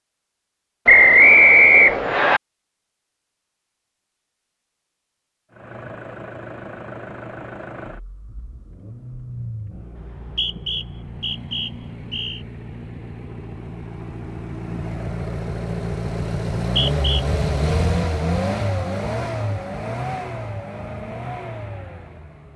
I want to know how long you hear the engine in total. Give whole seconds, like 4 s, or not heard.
17 s.